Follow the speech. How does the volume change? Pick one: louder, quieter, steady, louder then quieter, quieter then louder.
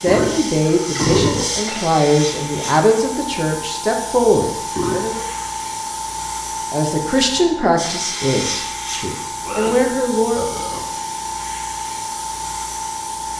steady.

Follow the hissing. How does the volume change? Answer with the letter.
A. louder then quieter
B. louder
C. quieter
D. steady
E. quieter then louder
D.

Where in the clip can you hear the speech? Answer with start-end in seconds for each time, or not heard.
0.0-5.2, 6.7-10.6.